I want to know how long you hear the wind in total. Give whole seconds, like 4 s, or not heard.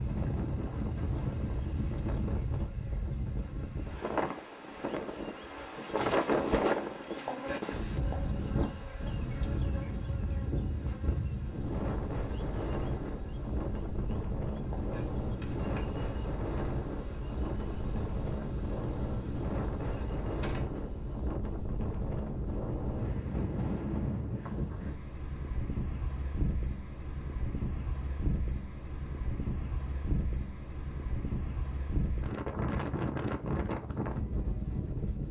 35 s.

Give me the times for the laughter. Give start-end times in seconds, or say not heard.
not heard.